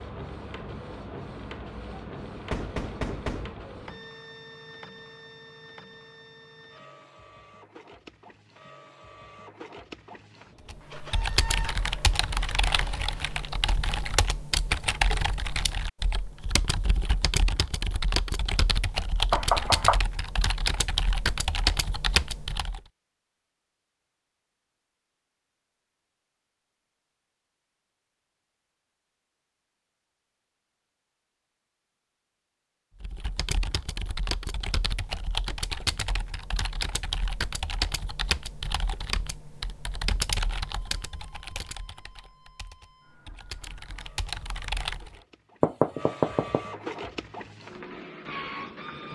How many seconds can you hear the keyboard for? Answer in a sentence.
You can hear the keyboard for 24 seconds altogether.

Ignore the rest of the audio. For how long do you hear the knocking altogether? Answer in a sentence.
The knocking can be heard for 3 seconds in total.